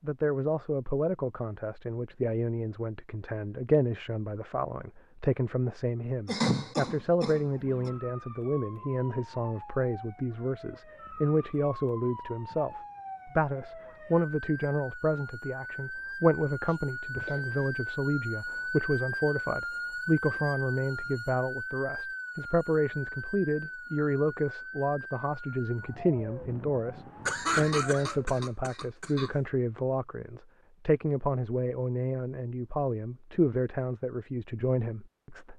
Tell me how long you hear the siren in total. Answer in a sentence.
The siren can be heard for 21 seconds in total.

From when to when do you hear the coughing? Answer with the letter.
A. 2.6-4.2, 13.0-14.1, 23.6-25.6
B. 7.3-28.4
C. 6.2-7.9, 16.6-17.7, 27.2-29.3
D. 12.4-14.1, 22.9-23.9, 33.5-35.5
C.